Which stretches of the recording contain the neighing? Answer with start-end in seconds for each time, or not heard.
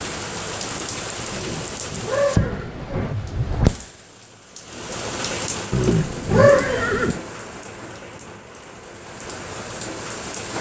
1.3-2.9, 5.7-7.2.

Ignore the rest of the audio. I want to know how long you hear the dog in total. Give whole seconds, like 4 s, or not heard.
not heard.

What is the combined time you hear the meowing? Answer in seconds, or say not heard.
2 s.